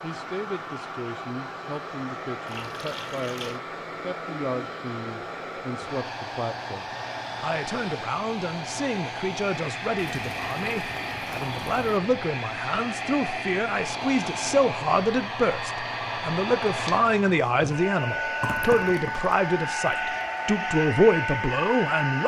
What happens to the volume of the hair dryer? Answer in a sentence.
The volume of the hair dryer goes up.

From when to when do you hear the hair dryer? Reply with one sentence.
The hair dryer can be heard from 0.0 to 22.2 s.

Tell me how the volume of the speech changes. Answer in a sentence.
The volume of the speech goes up.